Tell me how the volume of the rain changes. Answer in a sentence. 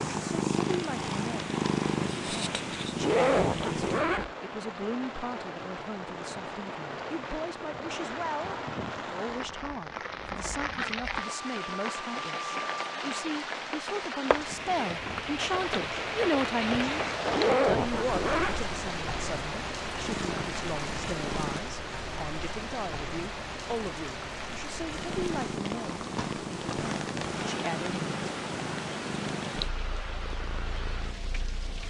The loudness of the rain goes up, then down.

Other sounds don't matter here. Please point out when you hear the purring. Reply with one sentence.
You can hear the purring from 0.0 to 4.0 s, from 20.0 to 21.6 s and from 24.9 to 31.8 s.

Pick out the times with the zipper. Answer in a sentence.
You can hear the zipper from 3.0 to 4.3 s and from 17.3 to 18.6 s.